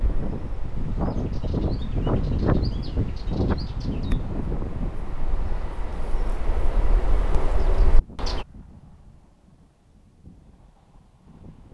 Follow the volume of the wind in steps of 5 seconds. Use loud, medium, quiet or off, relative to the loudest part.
loud, quiet, quiet.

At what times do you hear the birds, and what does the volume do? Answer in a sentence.
You can hear the birds from 0.0 to 8.4 s, getting louder.